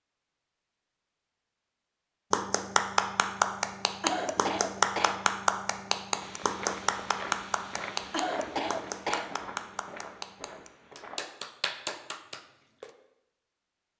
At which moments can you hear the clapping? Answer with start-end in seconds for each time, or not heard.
2.3-12.9.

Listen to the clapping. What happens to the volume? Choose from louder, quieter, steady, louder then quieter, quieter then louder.
quieter.